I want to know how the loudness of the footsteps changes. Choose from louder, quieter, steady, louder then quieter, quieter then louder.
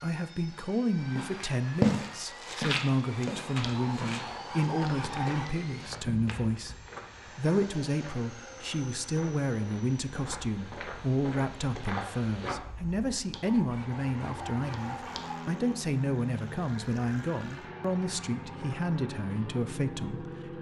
quieter then louder.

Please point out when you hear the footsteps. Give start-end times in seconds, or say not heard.
1.0-12.6.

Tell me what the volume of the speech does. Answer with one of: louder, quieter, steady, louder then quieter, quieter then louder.
steady.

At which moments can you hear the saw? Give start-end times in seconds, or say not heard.
3.6-5.5, 13.3-15.3.